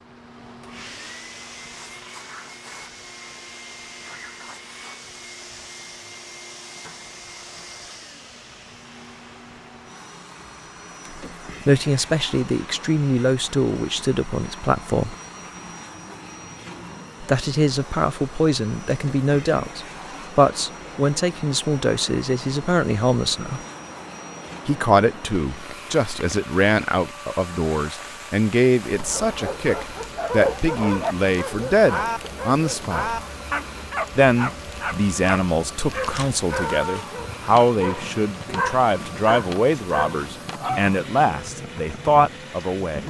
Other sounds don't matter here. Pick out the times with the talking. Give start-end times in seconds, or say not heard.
11.7-15.2, 17.2-23.6, 24.6-33.2, 34.1-43.0.